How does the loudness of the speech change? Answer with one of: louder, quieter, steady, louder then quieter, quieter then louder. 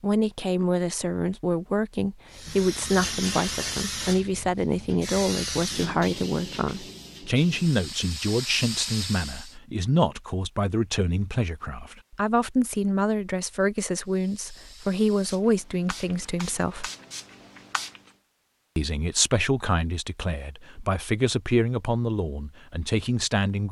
steady.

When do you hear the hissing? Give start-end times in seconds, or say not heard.
2.3-9.6, 14.0-18.1.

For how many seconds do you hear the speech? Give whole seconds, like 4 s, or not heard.
22 s.